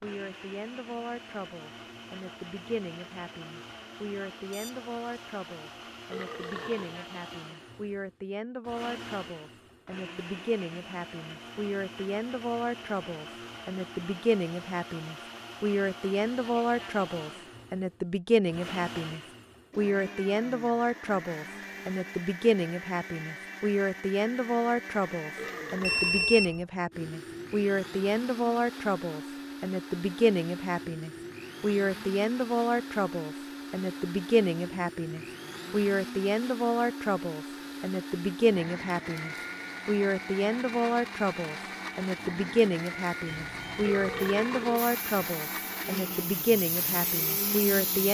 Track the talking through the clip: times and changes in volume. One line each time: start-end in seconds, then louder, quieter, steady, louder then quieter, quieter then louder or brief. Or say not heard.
0.0-48.1 louder.